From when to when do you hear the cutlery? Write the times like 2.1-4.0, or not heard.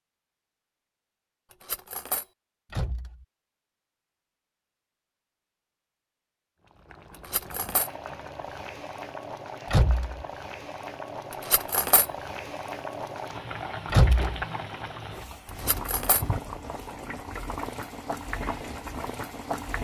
1.6-2.2, 7.2-7.9, 11.4-12.1, 15.6-16.2.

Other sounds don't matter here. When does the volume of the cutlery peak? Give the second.
12 s.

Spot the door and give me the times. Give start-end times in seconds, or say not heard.
2.7-3.2, 9.7-10.2, 13.9-14.3.